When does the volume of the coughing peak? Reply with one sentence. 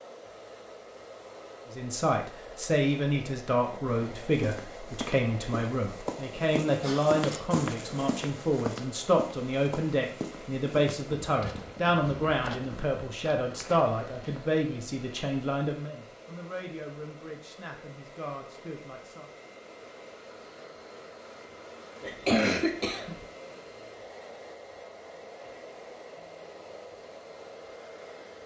The volume of the coughing peaks at 22 seconds.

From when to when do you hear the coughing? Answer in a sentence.
The coughing can be heard from 6.8 to 7.5 s and from 22.0 to 23.1 s.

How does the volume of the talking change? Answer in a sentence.
The volume of the talking goes down.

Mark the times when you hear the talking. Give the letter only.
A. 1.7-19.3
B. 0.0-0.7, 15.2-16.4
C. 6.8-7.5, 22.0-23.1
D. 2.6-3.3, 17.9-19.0
A.